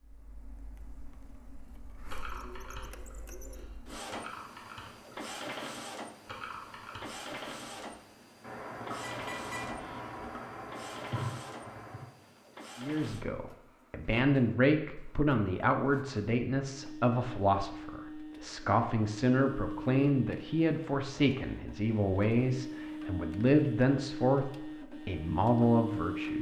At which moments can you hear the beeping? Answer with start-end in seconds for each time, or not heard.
9.0-10.3.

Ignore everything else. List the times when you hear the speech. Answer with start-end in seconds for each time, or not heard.
12.8-26.3.